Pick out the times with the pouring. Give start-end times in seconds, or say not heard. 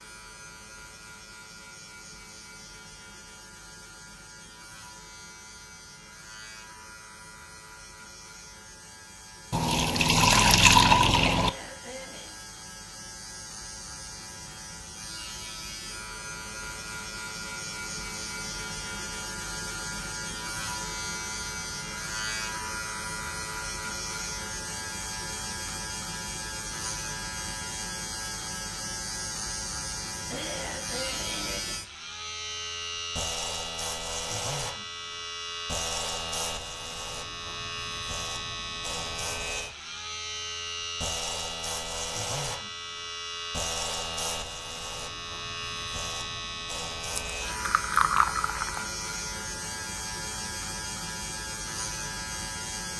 9.5-11.5, 47.1-48.9.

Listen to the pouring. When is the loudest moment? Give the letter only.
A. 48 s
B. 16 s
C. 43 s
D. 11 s
D.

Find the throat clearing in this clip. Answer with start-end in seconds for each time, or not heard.
11.3-12.4, 30.3-31.8.